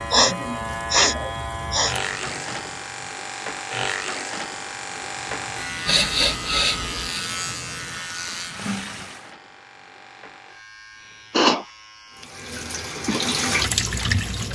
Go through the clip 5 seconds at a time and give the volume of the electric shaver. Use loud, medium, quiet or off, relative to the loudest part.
loud, loud, quiet.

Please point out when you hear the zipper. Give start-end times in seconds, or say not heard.
not heard.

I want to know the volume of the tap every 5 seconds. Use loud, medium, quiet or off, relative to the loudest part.
quiet, quiet, loud.